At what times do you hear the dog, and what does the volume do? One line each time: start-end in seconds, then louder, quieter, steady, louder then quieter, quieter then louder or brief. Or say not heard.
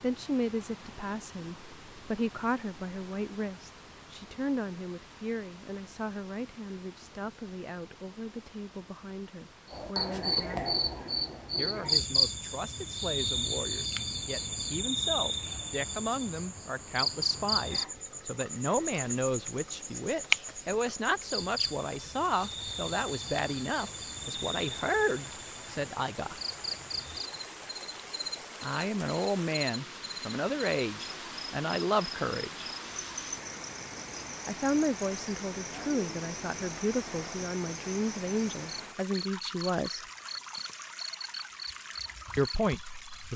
not heard.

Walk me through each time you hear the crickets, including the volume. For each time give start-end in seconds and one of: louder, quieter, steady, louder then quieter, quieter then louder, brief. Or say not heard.
9.7-43.3 quieter.